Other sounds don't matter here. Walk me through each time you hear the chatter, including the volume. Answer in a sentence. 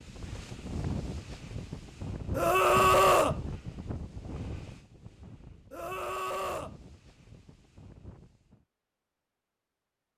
You can't hear the chatter here.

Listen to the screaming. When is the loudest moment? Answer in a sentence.
The loudest moment of the screaming is at 3 seconds.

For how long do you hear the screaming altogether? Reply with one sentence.
You can hear the screaming for 2 seconds altogether.